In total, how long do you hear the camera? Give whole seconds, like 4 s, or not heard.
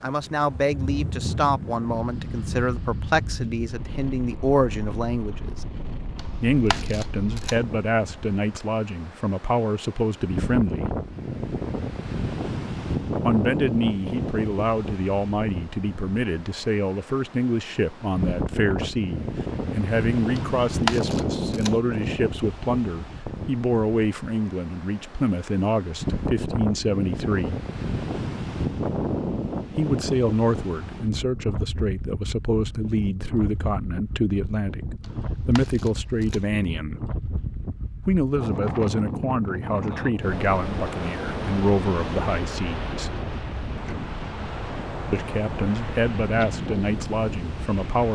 4 s.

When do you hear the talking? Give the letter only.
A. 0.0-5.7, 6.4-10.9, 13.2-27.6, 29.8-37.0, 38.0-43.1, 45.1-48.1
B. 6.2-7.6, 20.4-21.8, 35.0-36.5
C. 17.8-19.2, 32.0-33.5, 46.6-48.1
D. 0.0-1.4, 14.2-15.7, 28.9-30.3
A.